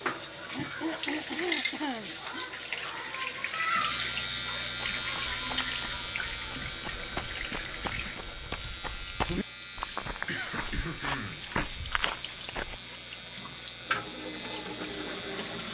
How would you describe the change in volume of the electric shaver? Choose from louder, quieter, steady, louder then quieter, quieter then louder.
louder then quieter.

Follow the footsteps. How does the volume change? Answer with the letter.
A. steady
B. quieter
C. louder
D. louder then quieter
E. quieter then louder
C.